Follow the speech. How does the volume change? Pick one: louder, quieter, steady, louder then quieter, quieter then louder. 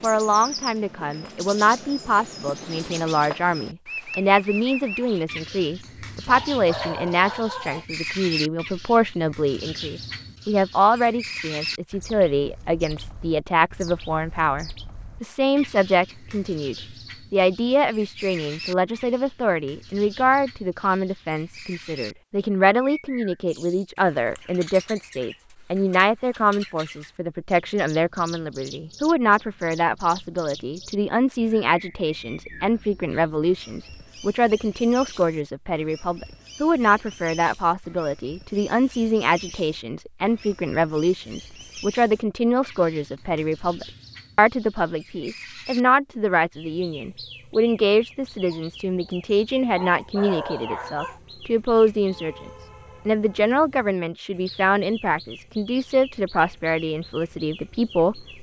steady.